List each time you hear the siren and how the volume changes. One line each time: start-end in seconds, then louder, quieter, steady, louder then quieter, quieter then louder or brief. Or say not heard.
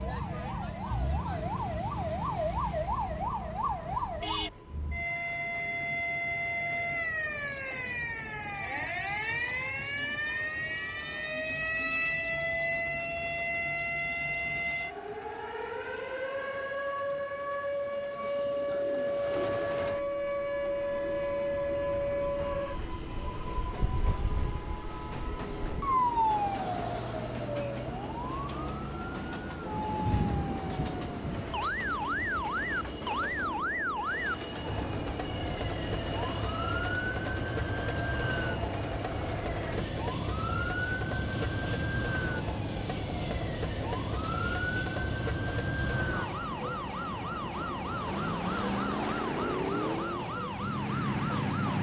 0.0-51.7 steady.